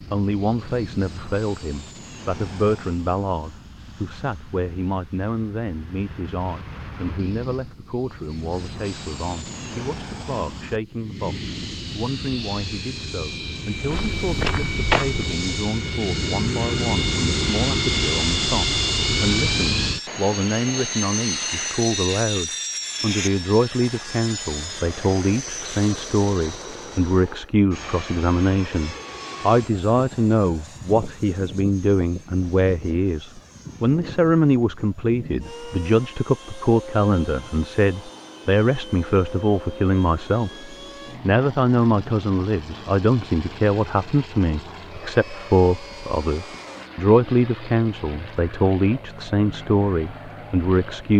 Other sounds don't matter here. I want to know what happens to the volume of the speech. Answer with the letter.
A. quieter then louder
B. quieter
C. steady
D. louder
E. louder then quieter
D.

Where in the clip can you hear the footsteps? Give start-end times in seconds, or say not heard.
13.8-15.3.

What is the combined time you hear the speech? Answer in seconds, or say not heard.
51 s.